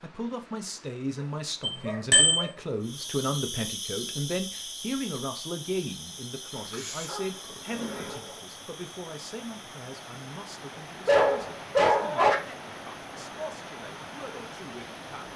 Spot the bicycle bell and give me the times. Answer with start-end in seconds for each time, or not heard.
1.6-2.4.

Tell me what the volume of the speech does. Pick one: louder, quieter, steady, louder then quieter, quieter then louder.
quieter.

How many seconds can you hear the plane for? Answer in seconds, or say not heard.
not heard.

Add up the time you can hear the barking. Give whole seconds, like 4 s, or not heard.
5 s.